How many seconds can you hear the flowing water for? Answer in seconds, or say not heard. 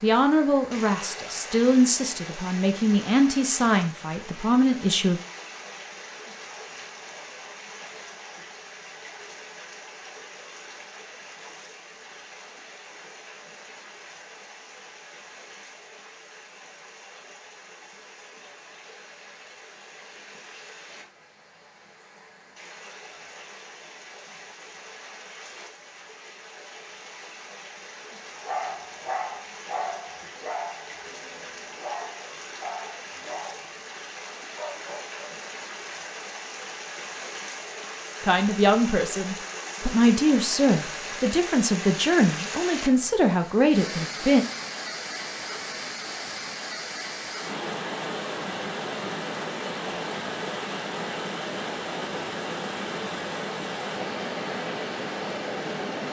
56 s.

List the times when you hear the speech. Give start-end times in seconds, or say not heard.
0.0-5.2, 38.2-44.5.